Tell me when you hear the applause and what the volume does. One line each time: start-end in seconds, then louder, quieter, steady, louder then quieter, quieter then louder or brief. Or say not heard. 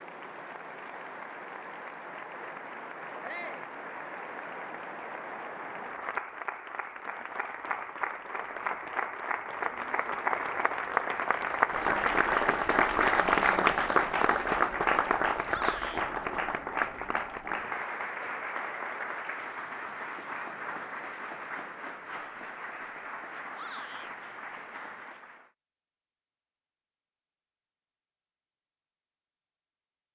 0.0-25.5 louder then quieter.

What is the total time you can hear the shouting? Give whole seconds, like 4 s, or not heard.
2 s.